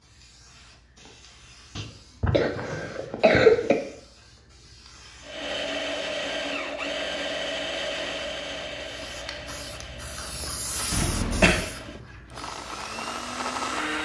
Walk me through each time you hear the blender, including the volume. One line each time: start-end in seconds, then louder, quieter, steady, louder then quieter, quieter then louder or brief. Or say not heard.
5.2-13.9 quieter then louder.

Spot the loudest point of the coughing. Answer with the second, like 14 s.
3 s.